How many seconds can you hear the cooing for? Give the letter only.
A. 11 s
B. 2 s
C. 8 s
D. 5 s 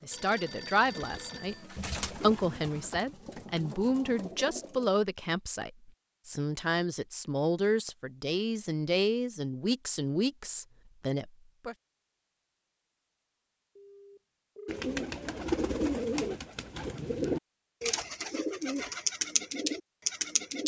A.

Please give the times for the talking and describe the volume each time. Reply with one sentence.
You can hear the talking from 0.0 to 11.8 s, at a steady volume.